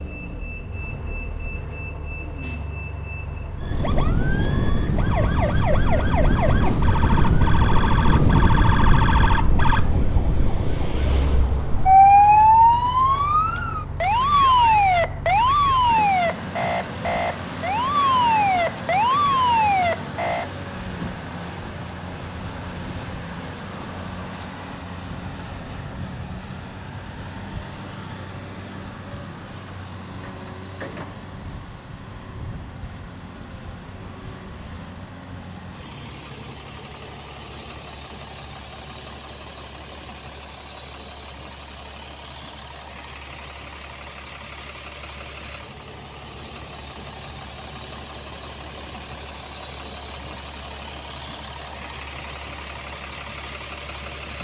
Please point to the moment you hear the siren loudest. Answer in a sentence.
The loudest moment of the siren is at 12 seconds.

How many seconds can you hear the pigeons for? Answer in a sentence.
You can't hear the pigeons here.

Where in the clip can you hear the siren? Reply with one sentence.
The siren can be heard from 3.6 to 20.5 s.